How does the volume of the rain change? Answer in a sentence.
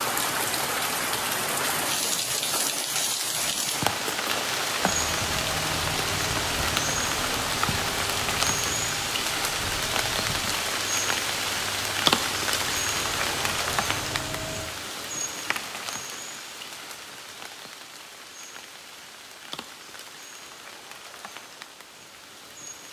The loudness of the rain goes down.